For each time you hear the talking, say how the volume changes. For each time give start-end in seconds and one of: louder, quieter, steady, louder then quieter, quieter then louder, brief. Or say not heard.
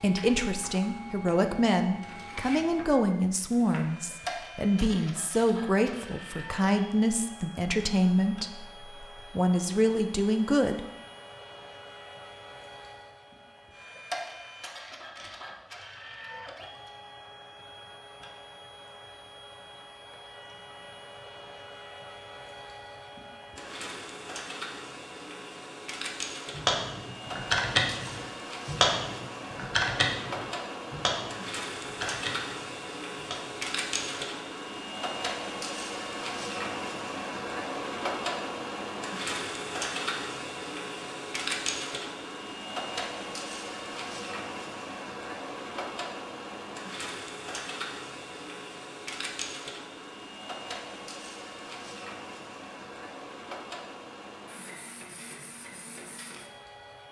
0.0-10.8 steady.